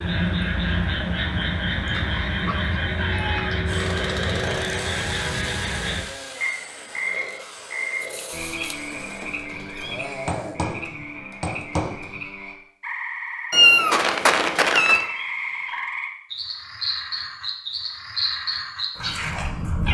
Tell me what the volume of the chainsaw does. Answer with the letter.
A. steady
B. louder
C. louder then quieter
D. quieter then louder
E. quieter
E.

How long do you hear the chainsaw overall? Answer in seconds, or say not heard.
7 s.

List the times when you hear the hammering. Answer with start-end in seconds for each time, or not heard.
10.2-12.2.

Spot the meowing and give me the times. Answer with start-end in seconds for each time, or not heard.
1.9-3.6, 8.0-10.0, 13.5-15.1.